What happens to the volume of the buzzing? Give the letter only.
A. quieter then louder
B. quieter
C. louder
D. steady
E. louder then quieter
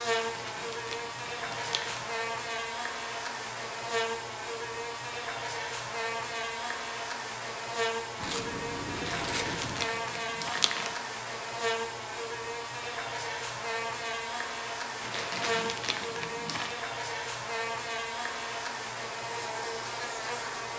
D.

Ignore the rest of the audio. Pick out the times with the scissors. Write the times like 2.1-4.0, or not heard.
8.2-10.0.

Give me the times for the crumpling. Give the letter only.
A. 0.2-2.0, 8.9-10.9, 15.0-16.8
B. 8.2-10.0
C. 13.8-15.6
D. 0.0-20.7
A.